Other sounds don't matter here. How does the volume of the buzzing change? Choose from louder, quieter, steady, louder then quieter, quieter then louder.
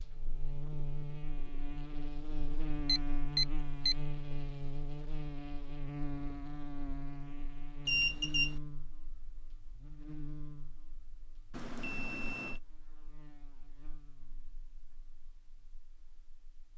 quieter.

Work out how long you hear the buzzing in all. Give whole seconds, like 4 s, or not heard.
17 s.